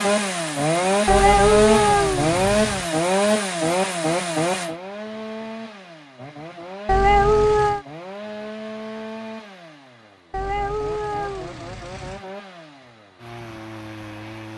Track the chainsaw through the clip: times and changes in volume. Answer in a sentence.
You can hear the chainsaw from 0.0 to 14.5 s, getting quieter.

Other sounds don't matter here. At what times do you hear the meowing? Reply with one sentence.
The meowing can be heard from 1.1 to 2.9 s, from 6.8 to 7.8 s and from 10.3 to 12.2 s.